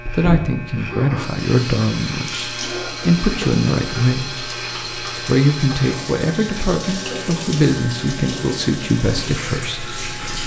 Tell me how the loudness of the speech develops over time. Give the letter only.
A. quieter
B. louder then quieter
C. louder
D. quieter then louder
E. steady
E.